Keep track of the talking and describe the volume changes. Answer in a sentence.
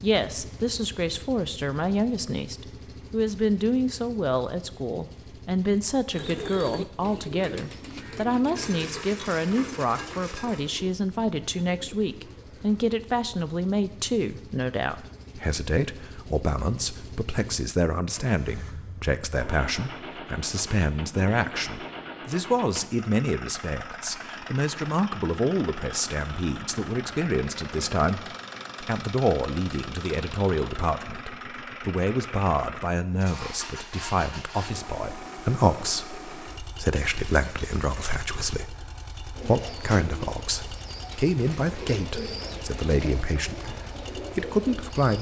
The loudness of the talking stays about the same.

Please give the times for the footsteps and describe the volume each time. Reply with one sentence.
You can't hear the footsteps here.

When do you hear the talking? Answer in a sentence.
The talking can be heard from 0.0 to 45.1 s.